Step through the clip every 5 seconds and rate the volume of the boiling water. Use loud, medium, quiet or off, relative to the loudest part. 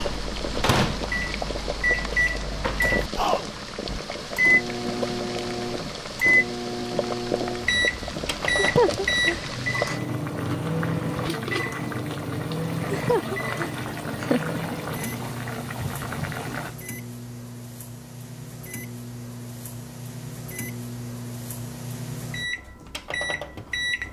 loud, loud, loud, loud, off.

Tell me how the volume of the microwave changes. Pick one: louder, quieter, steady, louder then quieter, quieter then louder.
quieter.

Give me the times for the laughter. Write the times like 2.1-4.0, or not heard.
8.4-10.0, 12.8-14.6.